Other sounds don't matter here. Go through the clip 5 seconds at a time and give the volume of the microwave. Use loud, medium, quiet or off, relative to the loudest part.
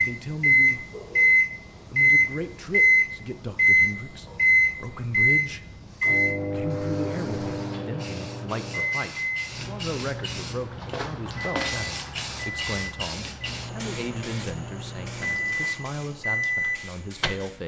loud, medium, quiet, medium.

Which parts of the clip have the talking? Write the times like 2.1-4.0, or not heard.
0.0-0.9, 1.9-5.7, 6.4-17.6.